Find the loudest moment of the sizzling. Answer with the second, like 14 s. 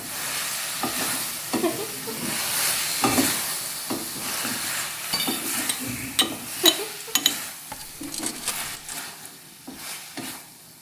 3 s.